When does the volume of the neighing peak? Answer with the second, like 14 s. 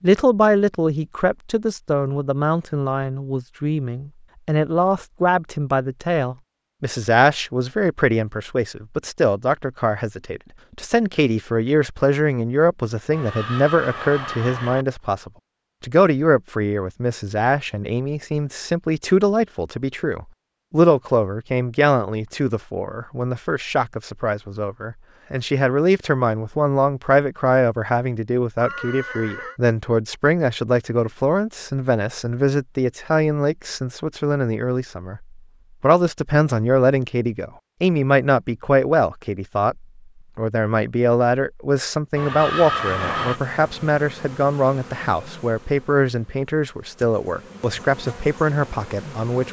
43 s.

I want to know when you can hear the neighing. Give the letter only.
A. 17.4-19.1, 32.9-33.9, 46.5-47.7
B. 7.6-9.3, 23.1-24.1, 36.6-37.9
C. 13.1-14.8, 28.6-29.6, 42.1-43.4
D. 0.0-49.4
C.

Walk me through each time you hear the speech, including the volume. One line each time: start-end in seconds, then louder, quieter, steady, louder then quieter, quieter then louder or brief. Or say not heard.
0.0-49.4 steady.